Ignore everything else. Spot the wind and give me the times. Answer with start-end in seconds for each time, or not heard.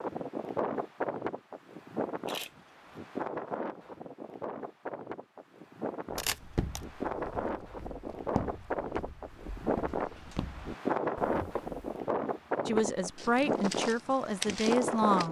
0.0-15.2.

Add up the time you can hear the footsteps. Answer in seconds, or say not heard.
8 s.